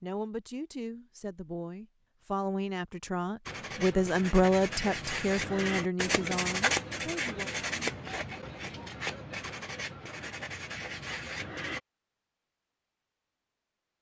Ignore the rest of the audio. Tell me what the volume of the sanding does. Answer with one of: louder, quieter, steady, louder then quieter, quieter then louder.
louder then quieter.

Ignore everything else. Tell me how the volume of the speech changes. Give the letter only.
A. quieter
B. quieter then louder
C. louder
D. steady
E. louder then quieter
E.